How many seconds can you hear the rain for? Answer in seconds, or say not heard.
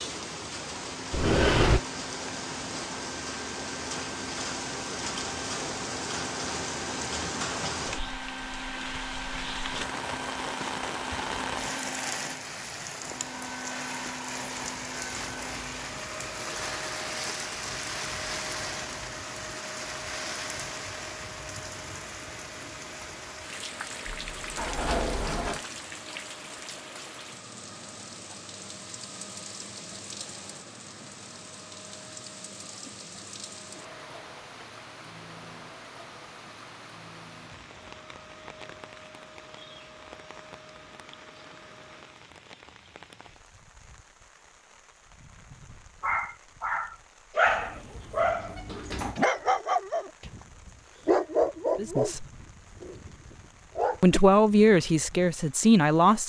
56 s.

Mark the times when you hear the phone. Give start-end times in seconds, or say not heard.
not heard.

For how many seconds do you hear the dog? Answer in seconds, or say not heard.
8 s.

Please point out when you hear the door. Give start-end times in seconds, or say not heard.
1.1-1.8, 24.1-25.6, 47.5-49.2.